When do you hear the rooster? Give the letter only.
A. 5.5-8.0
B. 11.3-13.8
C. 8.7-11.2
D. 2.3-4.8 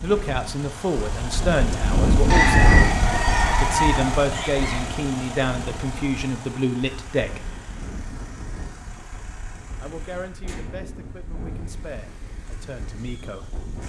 D.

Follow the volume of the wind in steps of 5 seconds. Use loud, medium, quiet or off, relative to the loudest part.
loud, quiet, quiet.